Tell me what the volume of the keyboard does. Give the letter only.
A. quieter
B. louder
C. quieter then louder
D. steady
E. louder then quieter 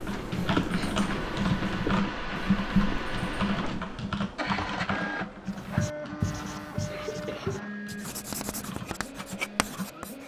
A.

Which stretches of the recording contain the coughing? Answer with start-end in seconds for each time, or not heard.
6.9-7.7.